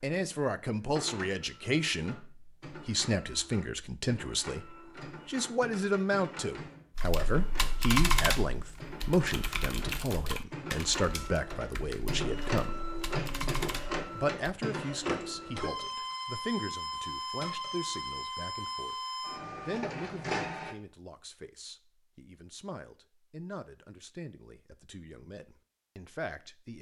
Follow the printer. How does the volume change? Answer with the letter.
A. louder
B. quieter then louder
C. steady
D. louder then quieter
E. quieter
A.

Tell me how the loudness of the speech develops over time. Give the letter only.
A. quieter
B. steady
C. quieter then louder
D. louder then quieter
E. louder
A.